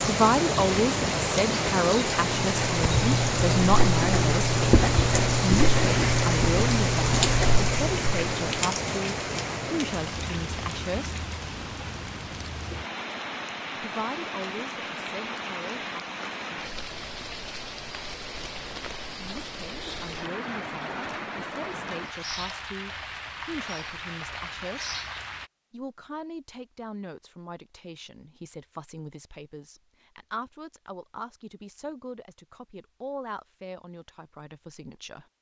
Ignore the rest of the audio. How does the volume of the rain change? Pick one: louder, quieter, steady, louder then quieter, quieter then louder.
quieter.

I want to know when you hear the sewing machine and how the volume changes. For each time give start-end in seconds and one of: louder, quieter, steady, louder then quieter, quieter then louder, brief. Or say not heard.
not heard.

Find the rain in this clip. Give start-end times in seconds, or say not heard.
0.0-25.5.